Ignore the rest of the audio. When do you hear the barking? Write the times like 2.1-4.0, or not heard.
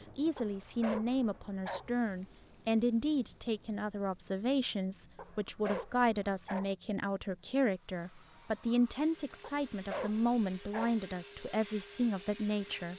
0.3-1.9, 5.2-6.8, 9.4-11.0.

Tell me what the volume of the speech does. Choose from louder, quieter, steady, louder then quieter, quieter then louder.
steady.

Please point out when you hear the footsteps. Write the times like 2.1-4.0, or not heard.
not heard.